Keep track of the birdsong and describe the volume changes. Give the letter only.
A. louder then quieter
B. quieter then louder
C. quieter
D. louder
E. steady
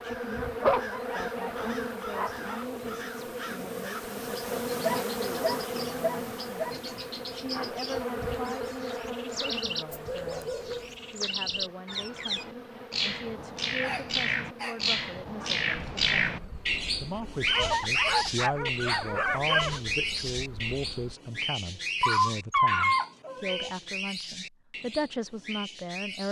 A.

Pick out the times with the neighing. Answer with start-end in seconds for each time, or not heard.
not heard.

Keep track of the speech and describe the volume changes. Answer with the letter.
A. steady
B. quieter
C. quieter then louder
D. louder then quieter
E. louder
E.